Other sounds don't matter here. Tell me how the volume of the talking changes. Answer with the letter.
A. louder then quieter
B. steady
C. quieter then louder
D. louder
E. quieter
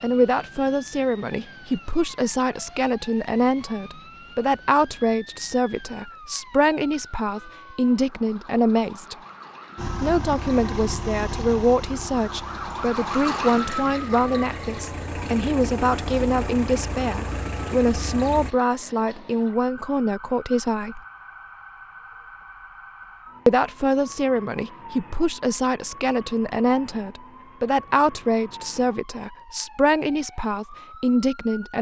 B.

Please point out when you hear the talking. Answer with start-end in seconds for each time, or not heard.
0.0-9.2, 10.0-21.0, 23.4-31.7.